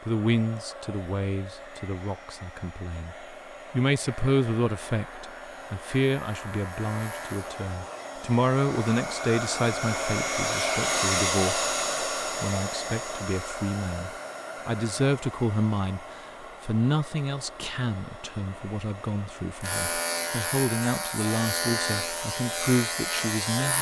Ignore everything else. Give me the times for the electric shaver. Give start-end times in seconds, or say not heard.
4.0-7.6, 19.6-23.7.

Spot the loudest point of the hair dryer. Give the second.
11 s.